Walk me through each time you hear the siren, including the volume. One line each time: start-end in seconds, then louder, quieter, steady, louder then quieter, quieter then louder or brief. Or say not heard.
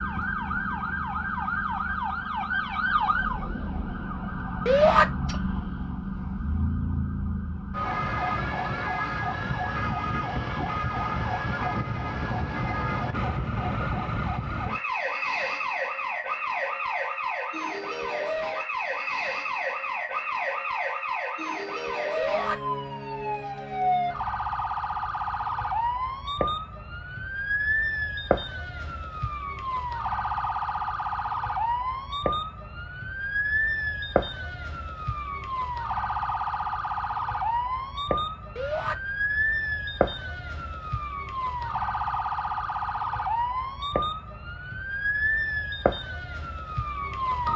0.0-47.5 steady.